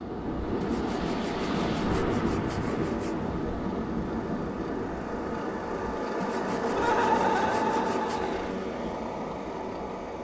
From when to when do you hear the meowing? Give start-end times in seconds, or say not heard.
not heard.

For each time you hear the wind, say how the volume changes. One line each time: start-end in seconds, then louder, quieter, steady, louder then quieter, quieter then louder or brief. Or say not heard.
0.0-10.1 quieter.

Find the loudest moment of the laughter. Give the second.
7 s.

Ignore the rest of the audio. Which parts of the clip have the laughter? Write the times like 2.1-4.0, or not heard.
6.7-8.5.